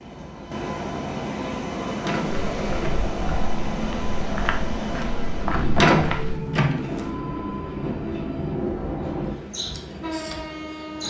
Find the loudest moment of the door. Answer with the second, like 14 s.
6 s.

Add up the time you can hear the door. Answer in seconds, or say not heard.
2 s.